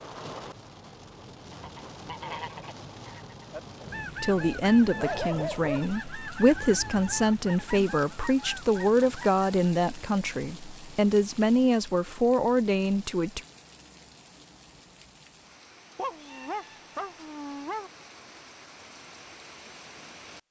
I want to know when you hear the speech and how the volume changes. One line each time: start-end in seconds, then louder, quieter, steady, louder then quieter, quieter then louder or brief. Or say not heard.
4.2-13.4 steady.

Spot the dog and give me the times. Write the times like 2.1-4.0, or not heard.
3.8-5.9, 15.9-17.9.